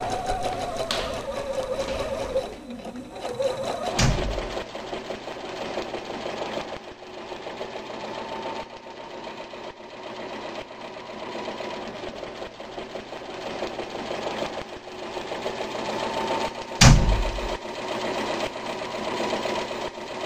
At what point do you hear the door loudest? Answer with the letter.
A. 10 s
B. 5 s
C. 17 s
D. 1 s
C.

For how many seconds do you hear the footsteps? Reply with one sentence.
You can hear the footsteps for 3 seconds altogether.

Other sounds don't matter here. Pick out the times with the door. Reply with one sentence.
The door can be heard from 4.0 to 4.5 s and from 16.8 to 17.5 s.